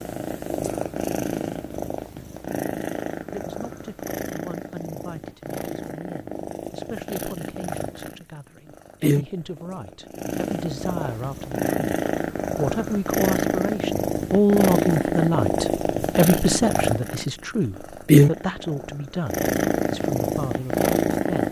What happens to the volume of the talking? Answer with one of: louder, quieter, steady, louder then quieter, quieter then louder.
louder then quieter.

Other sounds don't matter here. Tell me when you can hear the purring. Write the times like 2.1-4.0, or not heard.
0.0-21.4.